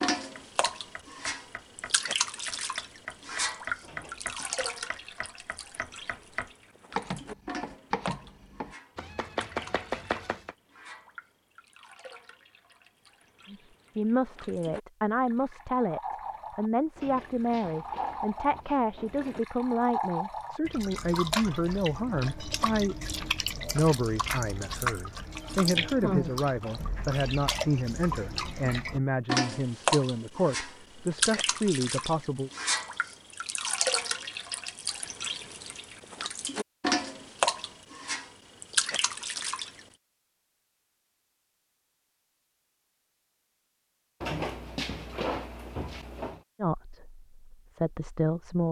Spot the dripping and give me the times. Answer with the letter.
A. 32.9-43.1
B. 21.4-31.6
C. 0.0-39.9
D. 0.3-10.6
C.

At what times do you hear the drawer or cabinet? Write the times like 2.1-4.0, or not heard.
3.8-4.5, 16.9-19.4, 44.2-46.4.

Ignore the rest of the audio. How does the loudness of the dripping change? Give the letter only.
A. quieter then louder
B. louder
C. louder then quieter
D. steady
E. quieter
A.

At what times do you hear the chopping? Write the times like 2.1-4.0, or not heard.
0.3-10.6.